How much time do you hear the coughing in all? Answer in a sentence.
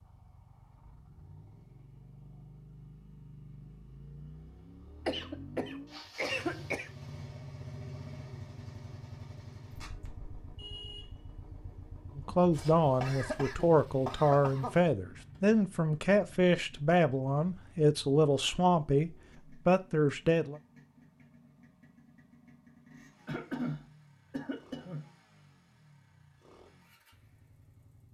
You can hear the coughing for 6 seconds altogether.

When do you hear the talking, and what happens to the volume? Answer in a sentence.
The talking can be heard from 12.2 to 20.6 s, at a steady volume.